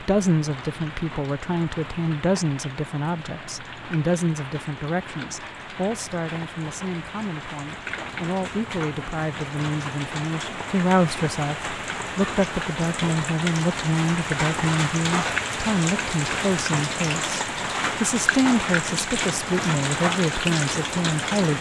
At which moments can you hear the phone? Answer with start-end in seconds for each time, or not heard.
not heard.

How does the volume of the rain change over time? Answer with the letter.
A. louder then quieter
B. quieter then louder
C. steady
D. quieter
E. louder
E.